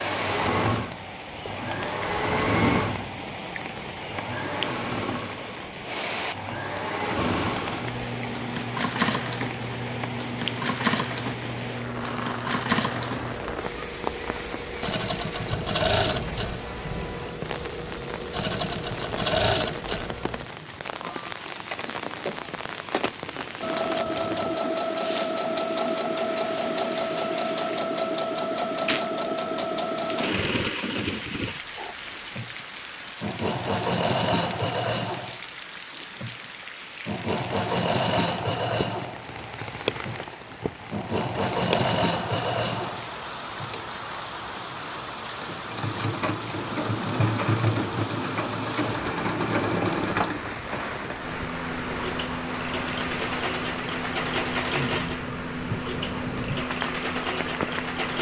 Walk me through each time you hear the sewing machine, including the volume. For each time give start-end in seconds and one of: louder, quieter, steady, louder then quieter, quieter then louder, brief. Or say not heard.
0.0-58.1 steady.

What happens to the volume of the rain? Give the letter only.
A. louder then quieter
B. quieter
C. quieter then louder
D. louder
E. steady
E.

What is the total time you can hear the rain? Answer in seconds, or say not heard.
58 s.